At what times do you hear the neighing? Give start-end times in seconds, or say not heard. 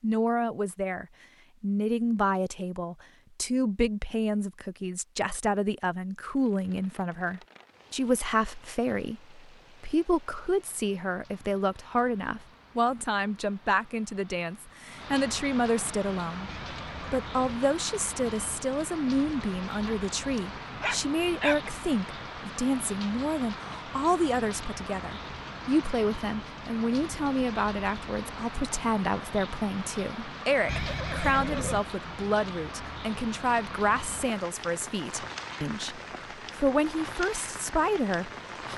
16.4-17.6, 30.6-31.8.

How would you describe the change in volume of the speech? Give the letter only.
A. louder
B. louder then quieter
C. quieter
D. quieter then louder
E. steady
E.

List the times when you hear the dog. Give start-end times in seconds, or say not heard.
19.7-21.7.